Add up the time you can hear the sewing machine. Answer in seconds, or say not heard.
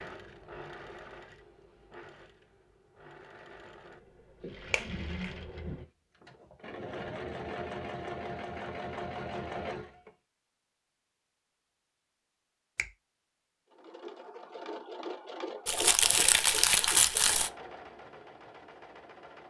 16 s.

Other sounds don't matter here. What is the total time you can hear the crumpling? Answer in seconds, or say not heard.
2 s.